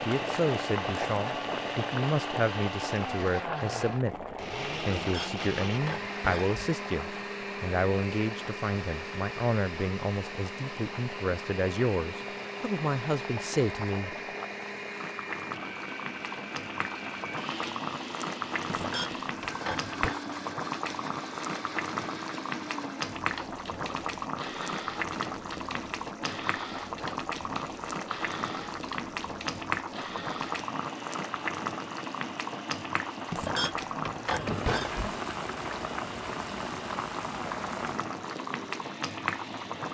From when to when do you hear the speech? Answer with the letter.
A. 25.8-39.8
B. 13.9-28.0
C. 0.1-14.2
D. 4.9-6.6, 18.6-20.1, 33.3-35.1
C.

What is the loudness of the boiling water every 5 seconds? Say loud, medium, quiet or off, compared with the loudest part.
loud, medium, medium, loud, loud, loud, loud, loud.